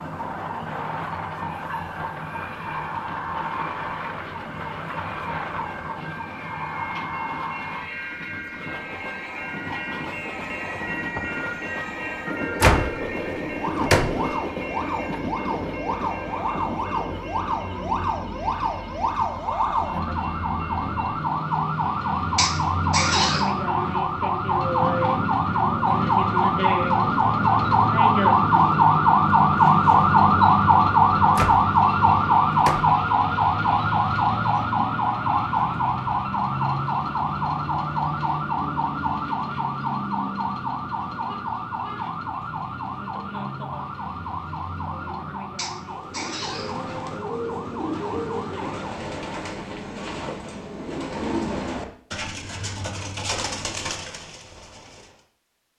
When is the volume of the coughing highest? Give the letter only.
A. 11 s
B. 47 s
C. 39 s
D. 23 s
D.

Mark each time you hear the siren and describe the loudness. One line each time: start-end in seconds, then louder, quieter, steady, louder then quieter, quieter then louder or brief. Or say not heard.
0.0-49.0 louder then quieter.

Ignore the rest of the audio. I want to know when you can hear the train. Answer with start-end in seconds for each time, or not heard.
0.0-21.2.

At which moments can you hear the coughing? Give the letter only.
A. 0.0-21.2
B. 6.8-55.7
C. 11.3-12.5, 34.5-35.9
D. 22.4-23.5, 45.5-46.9
D.